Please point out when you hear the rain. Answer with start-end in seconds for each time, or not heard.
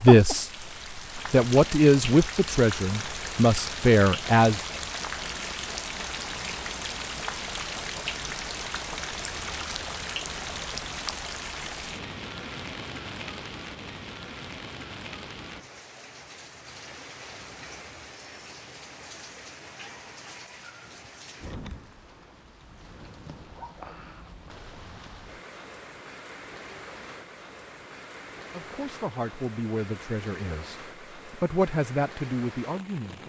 0.0-33.2.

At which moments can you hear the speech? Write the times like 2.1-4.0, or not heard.
0.0-0.5, 1.3-4.7, 28.5-33.2.